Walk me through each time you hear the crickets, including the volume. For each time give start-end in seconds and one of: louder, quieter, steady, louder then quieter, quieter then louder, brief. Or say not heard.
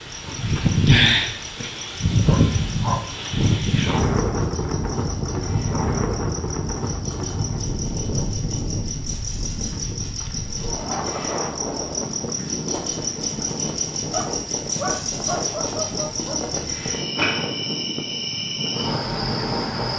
0.0-19.9 louder.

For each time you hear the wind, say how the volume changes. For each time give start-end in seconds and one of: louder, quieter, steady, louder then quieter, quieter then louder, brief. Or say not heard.
0.0-19.9 quieter.